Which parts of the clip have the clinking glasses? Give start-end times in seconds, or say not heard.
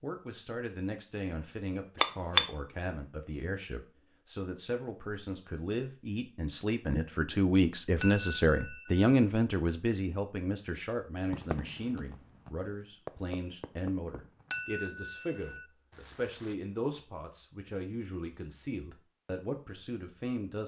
2.0-2.5, 8.0-8.6, 14.5-15.1.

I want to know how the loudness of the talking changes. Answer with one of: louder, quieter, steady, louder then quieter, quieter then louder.
louder then quieter.